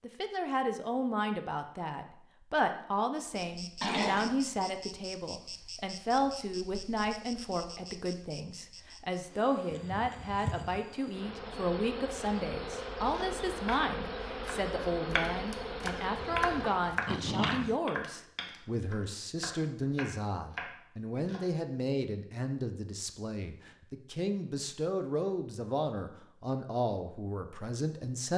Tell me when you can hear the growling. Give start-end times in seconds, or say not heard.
3.8-4.7, 16.2-17.8.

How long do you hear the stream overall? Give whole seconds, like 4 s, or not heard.
not heard.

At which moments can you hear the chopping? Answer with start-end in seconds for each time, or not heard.
13.1-21.4.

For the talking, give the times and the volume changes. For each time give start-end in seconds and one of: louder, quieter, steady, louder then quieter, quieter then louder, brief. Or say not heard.
0.0-28.3 steady.